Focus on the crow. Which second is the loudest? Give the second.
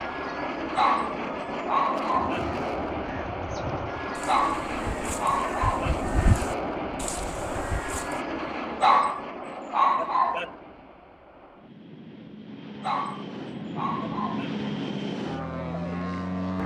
6 s.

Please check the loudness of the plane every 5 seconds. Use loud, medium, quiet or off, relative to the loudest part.
loud, loud, medium, loud.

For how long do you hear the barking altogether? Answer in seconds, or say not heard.
7 s.